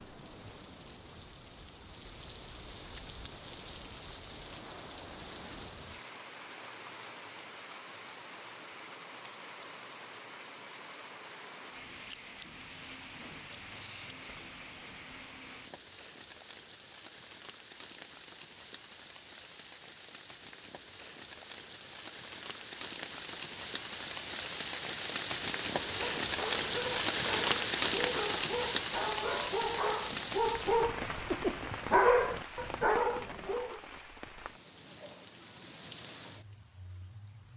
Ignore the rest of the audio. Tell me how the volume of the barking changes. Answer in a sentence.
The loudness of the barking goes up.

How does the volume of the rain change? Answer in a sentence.
The loudness of the rain goes up, then down.